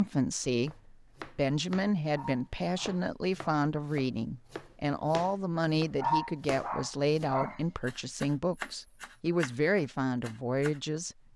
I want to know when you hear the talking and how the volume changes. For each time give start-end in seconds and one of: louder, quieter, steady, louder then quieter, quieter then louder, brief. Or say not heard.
0.0-11.2 steady.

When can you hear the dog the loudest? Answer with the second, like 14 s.
6 s.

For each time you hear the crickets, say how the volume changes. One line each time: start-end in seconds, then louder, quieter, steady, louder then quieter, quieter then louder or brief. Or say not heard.
not heard.